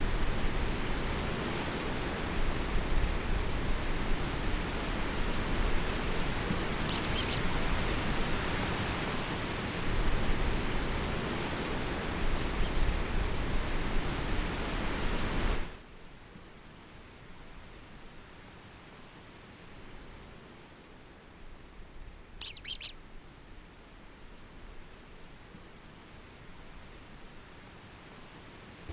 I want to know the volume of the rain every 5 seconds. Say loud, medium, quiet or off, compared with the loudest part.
loud, loud, loud, medium, quiet, quiet.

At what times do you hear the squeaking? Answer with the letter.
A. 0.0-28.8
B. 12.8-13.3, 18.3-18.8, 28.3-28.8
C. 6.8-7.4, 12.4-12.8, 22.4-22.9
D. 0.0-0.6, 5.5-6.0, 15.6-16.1
C.